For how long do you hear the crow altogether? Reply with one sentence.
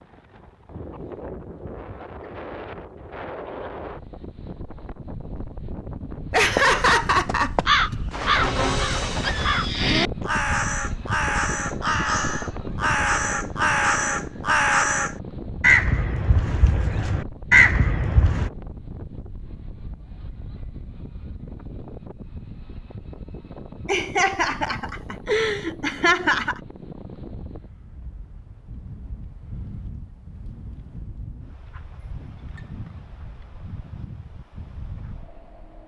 The crow can be heard for 12 seconds in total.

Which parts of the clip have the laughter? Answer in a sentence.
The laughter can be heard from 6.3 to 8.0 s and from 23.9 to 26.6 s.